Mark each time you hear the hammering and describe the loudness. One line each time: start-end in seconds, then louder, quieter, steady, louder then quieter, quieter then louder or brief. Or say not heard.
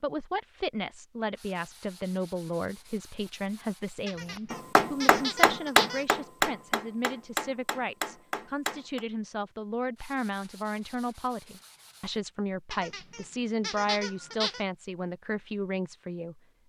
4.5-9.1 quieter.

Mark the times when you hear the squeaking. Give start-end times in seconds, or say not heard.
4.0-6.0, 12.7-14.7.